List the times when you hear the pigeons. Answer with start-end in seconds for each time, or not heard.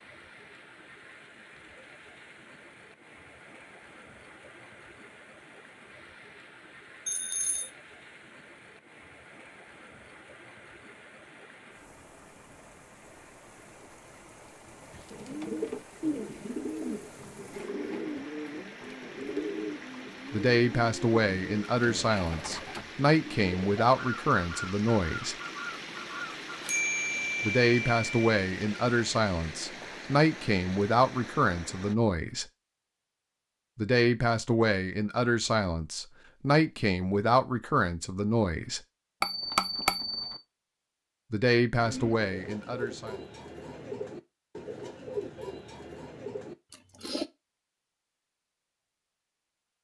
14.9-26.7, 41.8-47.2.